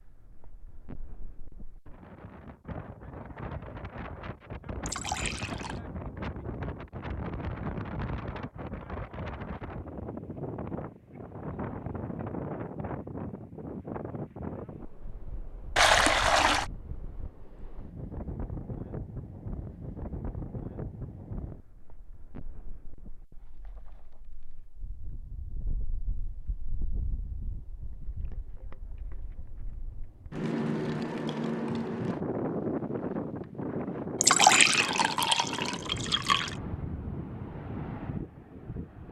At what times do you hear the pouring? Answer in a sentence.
You can hear the pouring from 4.8 to 5.8 s, from 15.8 to 16.6 s and from 34.2 to 36.5 s.